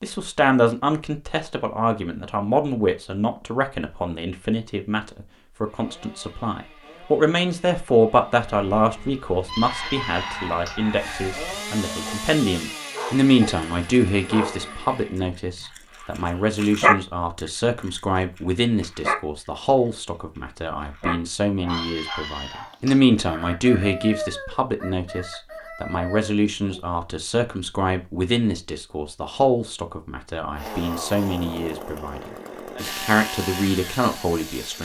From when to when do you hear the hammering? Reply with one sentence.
The hammering can't be heard in this clip.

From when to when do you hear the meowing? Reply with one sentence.
You can hear the meowing from 9.4 to 10.8 s and from 21.6 to 23.0 s.